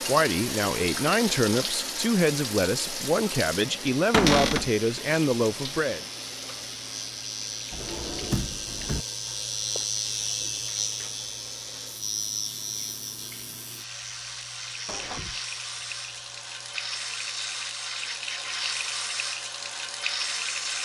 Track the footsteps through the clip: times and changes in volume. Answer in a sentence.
You can't hear the footsteps here.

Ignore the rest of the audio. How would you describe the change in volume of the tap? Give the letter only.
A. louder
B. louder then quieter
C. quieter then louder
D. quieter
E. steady
C.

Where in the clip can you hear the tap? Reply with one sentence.
The tap can be heard from 0.0 to 20.7 s.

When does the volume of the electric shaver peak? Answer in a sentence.
The volume of the electric shaver peaks at 10 seconds.